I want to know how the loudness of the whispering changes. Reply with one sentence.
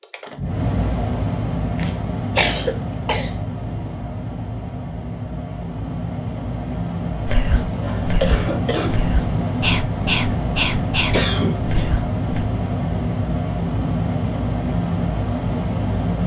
The volume of the whispering goes up, then down.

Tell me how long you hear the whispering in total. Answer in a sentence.
The whispering can be heard for 5 seconds in total.